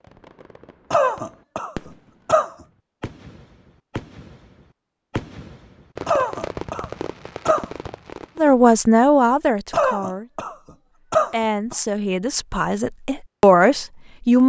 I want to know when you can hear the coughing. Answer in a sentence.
You can hear the coughing from 0.9 to 2.5 s, from 6.0 to 7.7 s and from 9.7 to 11.8 s.